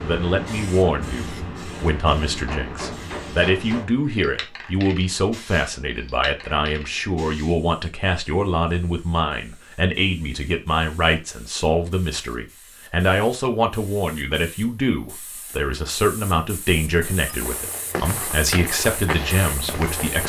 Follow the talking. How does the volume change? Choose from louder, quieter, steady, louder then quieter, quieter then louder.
steady.